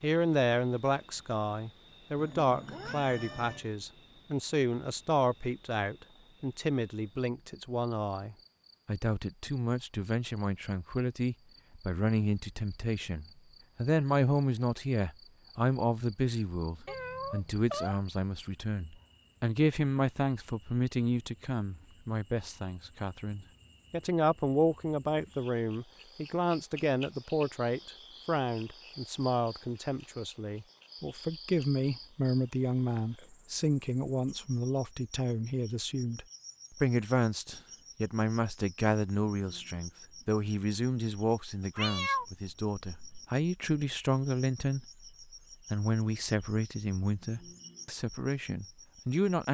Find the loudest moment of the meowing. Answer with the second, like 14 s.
42 s.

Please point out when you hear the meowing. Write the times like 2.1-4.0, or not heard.
2.1-3.6, 16.9-17.9, 41.8-43.2.